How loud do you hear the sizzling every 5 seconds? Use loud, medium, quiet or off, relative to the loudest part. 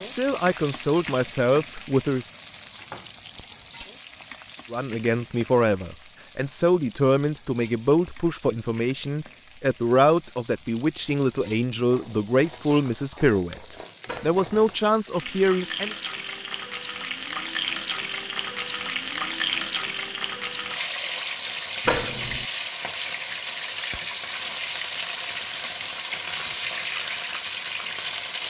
medium, quiet, quiet, loud, loud, loud.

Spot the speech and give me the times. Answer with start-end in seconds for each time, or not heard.
0.0-2.2, 4.7-15.9.